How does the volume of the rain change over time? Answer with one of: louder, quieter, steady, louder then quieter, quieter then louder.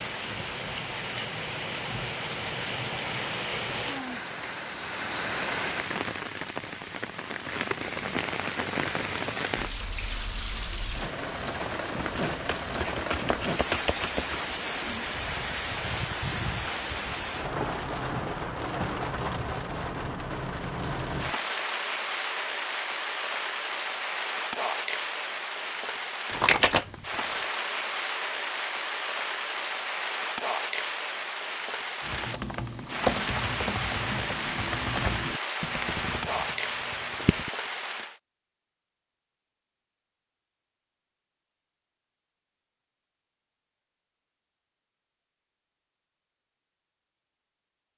steady.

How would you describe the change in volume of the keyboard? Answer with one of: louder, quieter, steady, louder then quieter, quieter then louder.
quieter.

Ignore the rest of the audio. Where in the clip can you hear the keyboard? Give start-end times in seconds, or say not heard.
32.0-37.5.